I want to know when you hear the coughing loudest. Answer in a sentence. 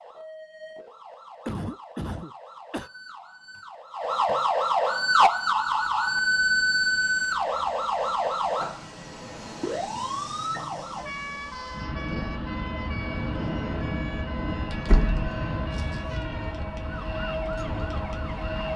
The loudest moment of the coughing is at 2 seconds.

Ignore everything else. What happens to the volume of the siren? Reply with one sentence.
The volume of the siren goes up, then down.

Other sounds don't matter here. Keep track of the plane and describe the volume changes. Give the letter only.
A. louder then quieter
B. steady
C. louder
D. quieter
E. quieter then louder
C.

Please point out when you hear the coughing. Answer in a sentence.
You can hear the coughing from 1.4 to 2.9 s.